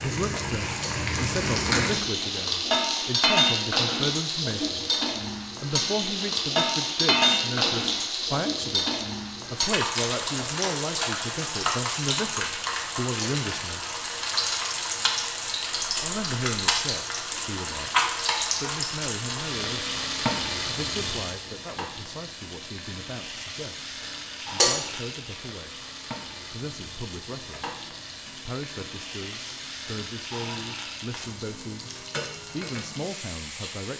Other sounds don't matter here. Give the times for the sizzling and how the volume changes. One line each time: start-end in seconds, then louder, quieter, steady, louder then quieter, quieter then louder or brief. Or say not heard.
0.0-33.9 quieter.